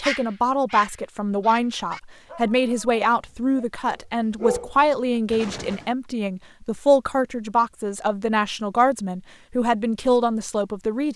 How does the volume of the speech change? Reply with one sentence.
The volume of the speech stays about the same.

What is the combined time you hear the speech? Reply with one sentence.
The speech can be heard for 11 seconds in total.